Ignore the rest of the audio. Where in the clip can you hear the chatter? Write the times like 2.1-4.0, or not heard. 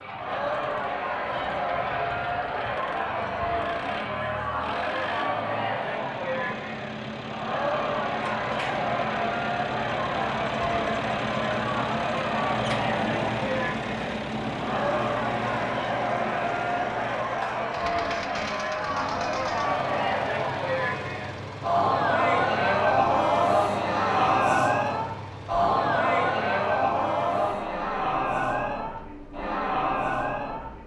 0.0-30.8.